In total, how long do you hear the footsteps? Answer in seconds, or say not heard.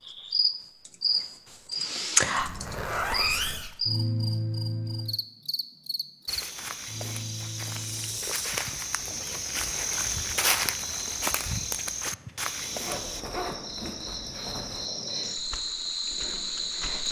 7 s.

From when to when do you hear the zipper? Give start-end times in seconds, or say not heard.
2.4-3.8, 12.8-14.8.